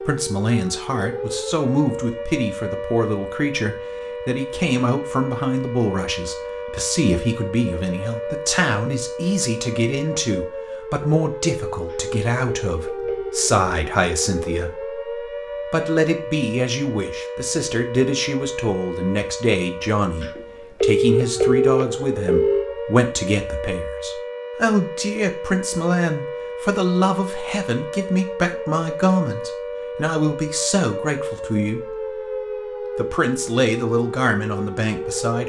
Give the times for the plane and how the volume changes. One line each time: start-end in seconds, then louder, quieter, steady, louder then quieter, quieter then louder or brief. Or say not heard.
not heard.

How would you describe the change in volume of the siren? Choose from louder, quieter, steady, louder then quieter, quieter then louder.
steady.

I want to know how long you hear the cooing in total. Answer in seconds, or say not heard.
not heard.